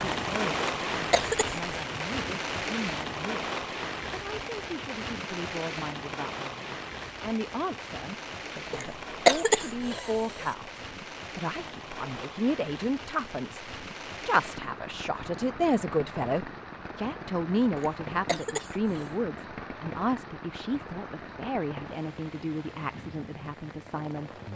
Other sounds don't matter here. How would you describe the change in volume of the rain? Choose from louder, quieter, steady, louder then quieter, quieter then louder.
quieter.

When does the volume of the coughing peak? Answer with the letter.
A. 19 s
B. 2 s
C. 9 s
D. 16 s
C.